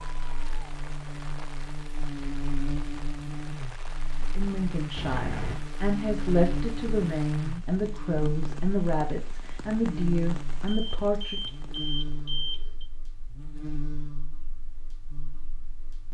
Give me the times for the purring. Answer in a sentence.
The purring can't be heard in this clip.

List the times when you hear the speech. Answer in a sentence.
The speech can be heard from 4.3 to 11.4 s.